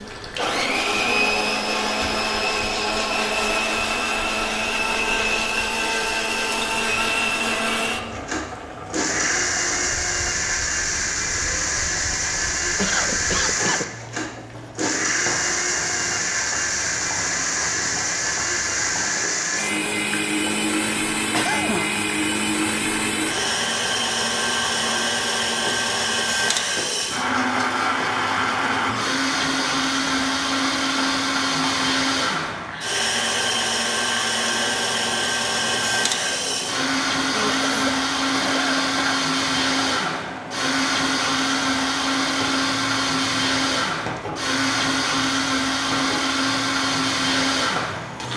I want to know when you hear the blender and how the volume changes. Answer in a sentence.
The blender can be heard from 0.0 to 48.3 s, at a steady volume.